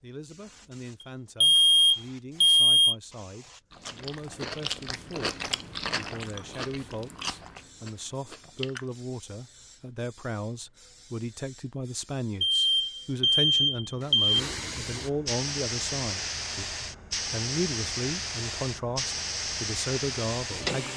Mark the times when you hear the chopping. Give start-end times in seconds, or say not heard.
not heard.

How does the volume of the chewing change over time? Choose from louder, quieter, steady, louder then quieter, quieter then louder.
quieter.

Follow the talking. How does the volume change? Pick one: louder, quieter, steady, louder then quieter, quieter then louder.
louder.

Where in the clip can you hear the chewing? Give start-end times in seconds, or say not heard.
3.7-9.0.